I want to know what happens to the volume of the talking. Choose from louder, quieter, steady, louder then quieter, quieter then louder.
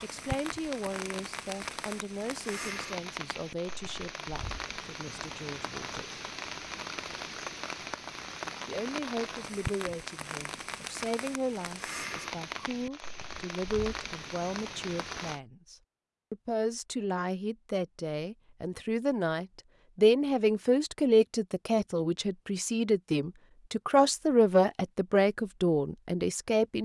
louder.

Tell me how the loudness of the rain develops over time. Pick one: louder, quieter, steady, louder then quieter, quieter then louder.
steady.